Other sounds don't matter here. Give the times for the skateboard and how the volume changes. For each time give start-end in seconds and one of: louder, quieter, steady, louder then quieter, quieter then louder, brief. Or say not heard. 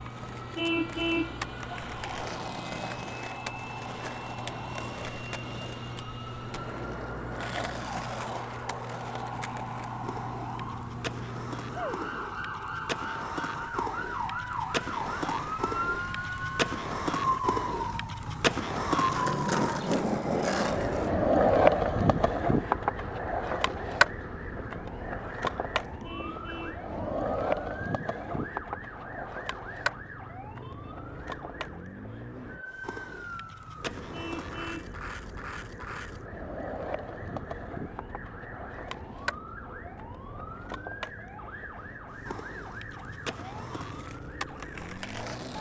0.0-45.5 louder then quieter.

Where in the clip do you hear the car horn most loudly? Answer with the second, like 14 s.
1 s.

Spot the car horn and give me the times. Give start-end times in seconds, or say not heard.
0.6-1.4, 26.0-26.9, 34.1-35.0.